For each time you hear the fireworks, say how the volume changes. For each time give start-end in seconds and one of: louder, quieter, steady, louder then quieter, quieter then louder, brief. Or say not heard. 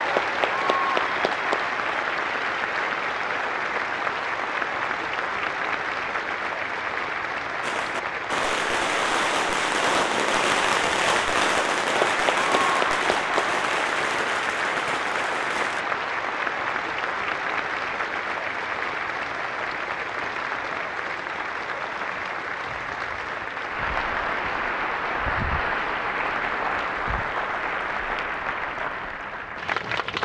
7.6-15.8 quieter.